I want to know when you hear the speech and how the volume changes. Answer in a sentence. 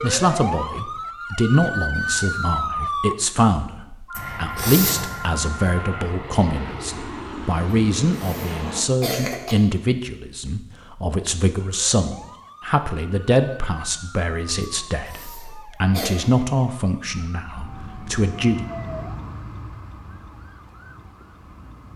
The speech can be heard from 0.0 to 18.6 s, at a steady volume.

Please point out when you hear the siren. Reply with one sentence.
You can hear the siren from 0.0 to 3.1 s and from 11.6 to 21.9 s.